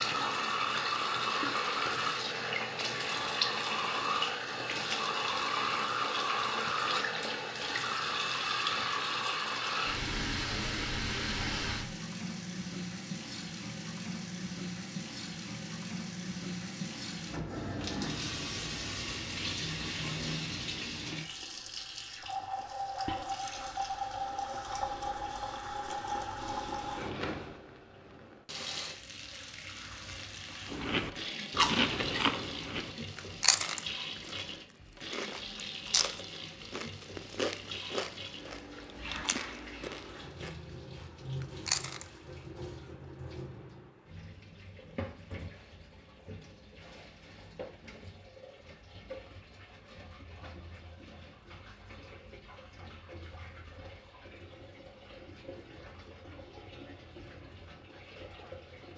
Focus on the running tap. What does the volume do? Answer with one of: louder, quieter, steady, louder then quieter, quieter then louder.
quieter.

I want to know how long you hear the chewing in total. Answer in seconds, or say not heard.
10 s.